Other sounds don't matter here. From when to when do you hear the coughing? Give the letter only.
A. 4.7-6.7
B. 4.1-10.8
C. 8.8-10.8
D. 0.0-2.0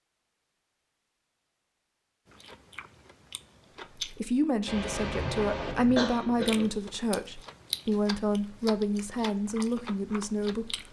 A.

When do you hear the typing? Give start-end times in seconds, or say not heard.
not heard.